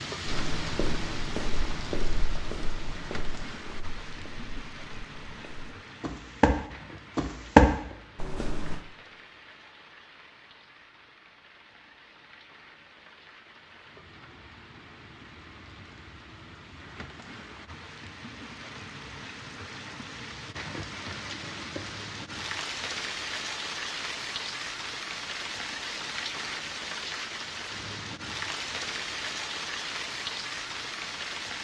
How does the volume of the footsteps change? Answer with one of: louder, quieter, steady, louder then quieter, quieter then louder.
quieter then louder.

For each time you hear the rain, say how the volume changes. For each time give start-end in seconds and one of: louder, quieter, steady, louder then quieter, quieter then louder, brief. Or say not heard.
0.0-31.5 quieter then louder.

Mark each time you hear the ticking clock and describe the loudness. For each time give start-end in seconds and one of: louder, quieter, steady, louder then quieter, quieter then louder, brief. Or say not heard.
not heard.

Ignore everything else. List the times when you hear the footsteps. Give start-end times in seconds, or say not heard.
0.2-8.8.